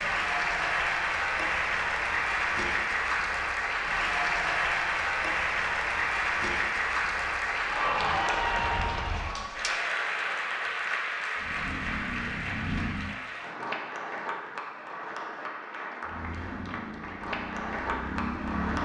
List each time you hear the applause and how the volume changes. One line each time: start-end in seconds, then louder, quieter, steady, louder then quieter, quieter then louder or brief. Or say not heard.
0.0-18.8 quieter.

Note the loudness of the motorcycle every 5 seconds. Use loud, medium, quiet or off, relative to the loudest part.
off, off, loud, loud.